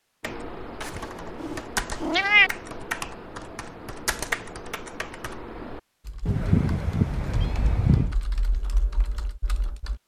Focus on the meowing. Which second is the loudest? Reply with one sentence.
The volume of the meowing peaks at 2 seconds.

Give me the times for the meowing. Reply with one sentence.
You can hear the meowing from 0.8 to 2.5 s and from 6.2 to 8.2 s.